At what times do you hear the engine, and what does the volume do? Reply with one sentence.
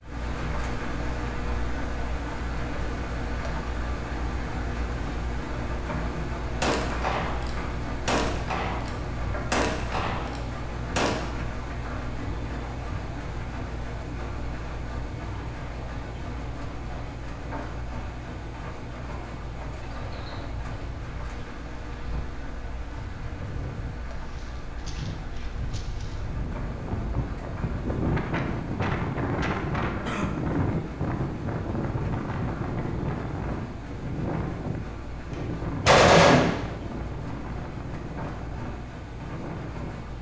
You can hear the engine from 0.0 to 40.1 s, getting quieter.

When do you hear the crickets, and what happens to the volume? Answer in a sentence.
You can't hear the crickets here.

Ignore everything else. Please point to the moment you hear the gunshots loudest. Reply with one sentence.
The loudest moment of the gunshots is at 36 seconds.